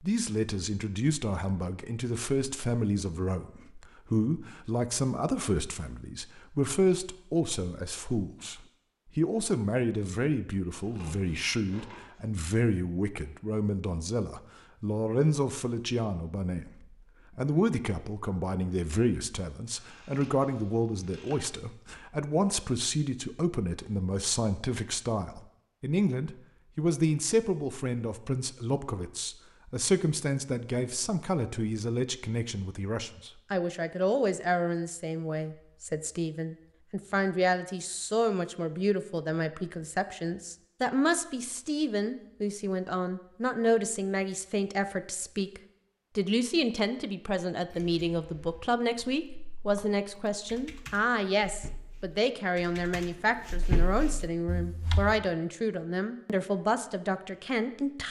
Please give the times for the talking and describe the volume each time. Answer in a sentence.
You can hear the talking from 0.0 to 58.0 s, at a steady volume.